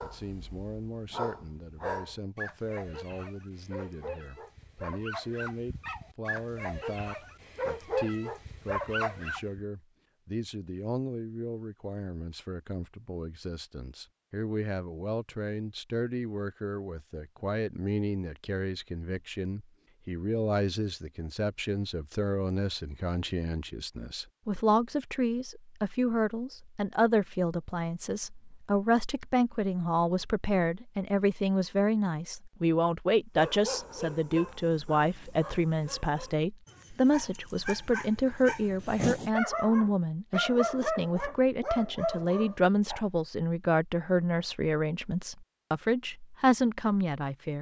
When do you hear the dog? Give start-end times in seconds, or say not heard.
0.0-9.6, 33.4-43.0.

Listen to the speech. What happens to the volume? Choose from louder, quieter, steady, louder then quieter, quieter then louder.
louder.